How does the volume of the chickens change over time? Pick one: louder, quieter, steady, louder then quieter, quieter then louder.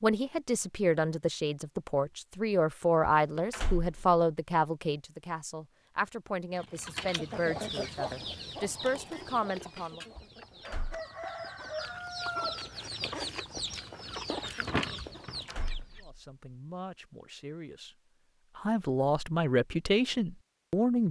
quieter then louder.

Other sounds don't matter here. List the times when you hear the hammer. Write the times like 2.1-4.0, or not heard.
not heard.